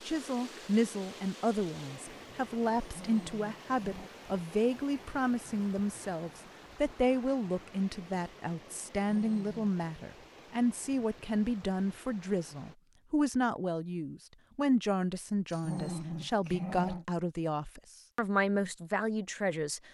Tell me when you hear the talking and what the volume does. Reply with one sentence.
You can hear the talking from 0.1 to 19.9 s, at a steady volume.